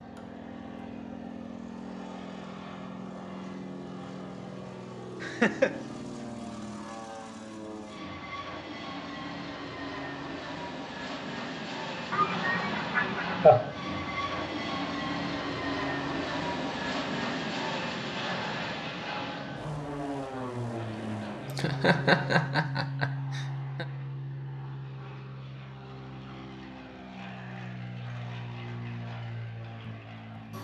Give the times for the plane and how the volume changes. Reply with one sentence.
You can hear the plane from 0.0 to 30.5 s, getting louder then quieter.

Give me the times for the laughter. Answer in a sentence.
You can hear the laughter from 5.2 to 5.8 s, from 12.1 to 13.7 s and from 21.4 to 23.9 s.